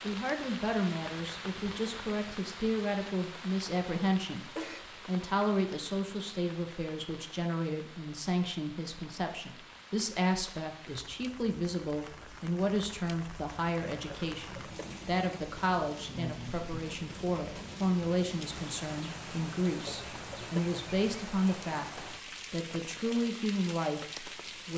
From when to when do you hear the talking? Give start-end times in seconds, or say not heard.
0.0-4.5, 5.0-24.7.